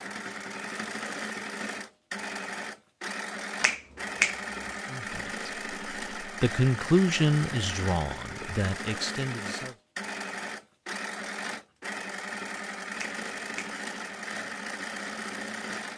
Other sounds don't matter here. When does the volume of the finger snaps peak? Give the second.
4 s.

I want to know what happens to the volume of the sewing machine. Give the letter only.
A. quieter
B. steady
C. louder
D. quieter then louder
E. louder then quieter
B.